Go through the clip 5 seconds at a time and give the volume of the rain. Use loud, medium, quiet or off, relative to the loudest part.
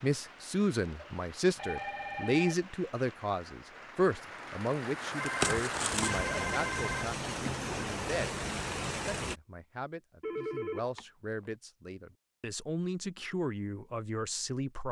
quiet, loud, off.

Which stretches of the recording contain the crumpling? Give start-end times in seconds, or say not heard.
5.4-6.2.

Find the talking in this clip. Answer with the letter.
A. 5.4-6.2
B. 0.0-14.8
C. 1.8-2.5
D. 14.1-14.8
B.